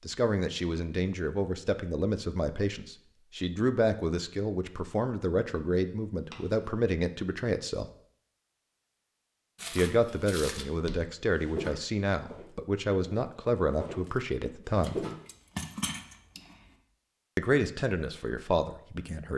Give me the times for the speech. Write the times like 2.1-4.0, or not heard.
0.0-7.9, 9.7-15.1, 17.4-19.3.